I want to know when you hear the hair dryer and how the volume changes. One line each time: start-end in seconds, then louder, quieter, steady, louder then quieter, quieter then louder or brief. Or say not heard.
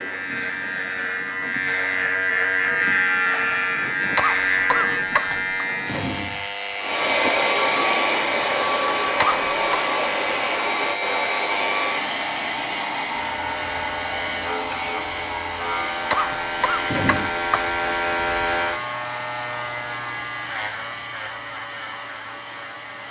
6.8-23.0 quieter.